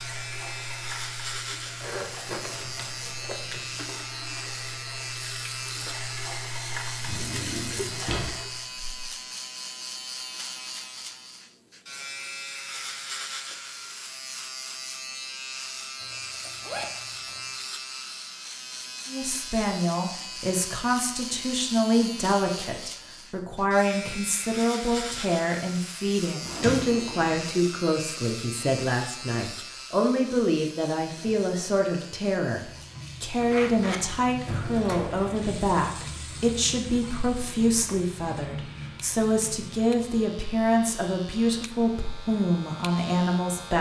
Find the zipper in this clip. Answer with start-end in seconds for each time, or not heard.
1.8-3.9, 16.0-17.5, 33.4-34.2.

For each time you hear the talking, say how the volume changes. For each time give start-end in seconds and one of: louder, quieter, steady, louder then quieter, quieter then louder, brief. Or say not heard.
19.1-43.7 steady.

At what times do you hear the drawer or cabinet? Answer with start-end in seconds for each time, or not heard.
7.0-9.1, 26.4-27.4, 34.5-35.5.